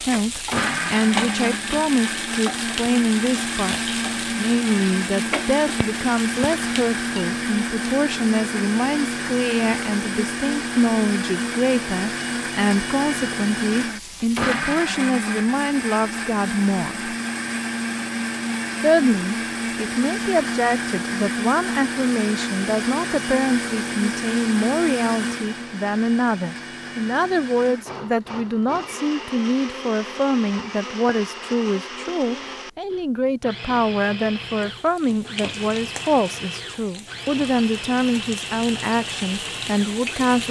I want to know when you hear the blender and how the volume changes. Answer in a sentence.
You can hear the blender from 0.1 to 40.4 s, getting quieter.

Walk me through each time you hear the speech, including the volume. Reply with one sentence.
You can hear the speech from 0.0 to 17.1 s, at a steady volume; and from 18.8 to 40.4 s, at a steady volume.